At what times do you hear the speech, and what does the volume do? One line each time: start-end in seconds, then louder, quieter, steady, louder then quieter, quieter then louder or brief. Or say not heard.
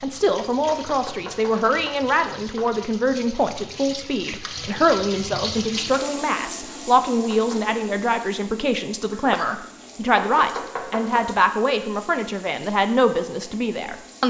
0.0-14.2 steady.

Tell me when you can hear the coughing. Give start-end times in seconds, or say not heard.
9.1-9.7.